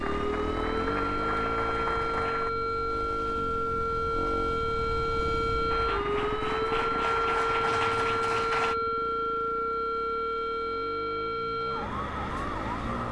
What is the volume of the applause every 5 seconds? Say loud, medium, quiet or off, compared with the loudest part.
loud, loud, off.